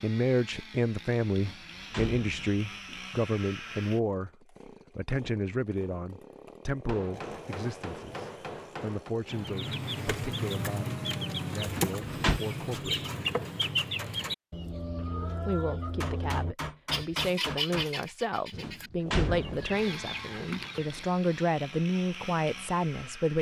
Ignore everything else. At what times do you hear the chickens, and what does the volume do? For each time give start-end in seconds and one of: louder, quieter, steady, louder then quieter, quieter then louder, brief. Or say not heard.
9.2-21.1 quieter.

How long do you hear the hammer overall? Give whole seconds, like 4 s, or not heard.
4 s.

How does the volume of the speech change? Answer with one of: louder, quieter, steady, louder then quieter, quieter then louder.
quieter then louder.